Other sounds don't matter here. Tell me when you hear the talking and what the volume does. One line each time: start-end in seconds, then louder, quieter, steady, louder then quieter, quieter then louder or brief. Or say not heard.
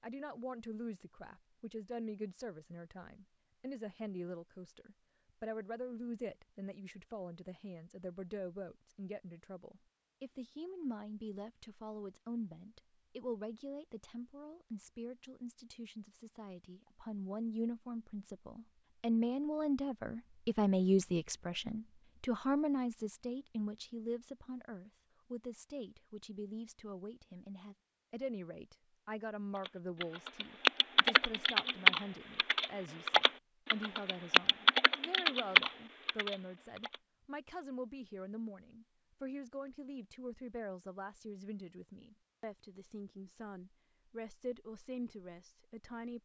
0.0-46.1 louder then quieter.